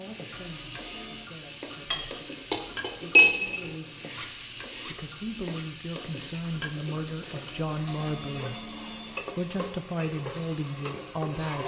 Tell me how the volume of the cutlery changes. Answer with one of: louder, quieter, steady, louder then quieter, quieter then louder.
quieter.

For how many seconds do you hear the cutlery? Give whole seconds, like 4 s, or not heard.
6 s.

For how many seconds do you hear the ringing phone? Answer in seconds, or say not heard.
3 s.